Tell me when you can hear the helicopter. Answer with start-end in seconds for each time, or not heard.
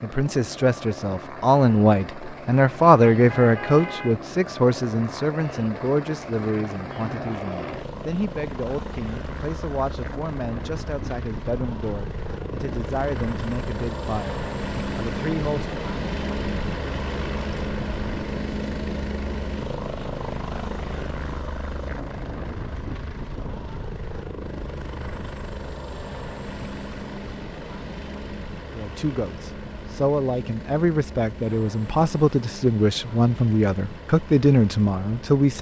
0.0-35.5.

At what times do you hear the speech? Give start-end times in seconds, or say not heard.
0.0-15.8, 28.7-35.5.